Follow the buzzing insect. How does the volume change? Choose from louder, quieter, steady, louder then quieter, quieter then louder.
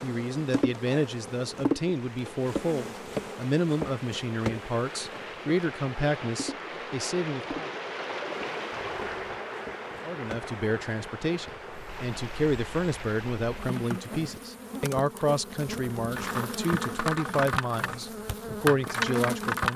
quieter then louder.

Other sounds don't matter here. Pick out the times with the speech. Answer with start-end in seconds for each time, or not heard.
0.0-7.7, 10.1-19.7.